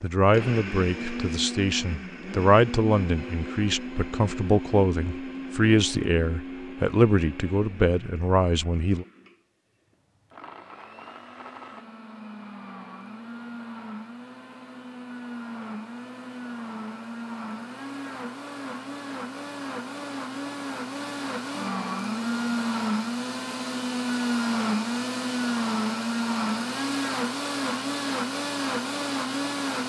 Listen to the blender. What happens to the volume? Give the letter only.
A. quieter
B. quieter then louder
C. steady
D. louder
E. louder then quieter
B.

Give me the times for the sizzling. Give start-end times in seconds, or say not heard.
not heard.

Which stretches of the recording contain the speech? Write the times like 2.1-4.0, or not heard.
0.0-9.1.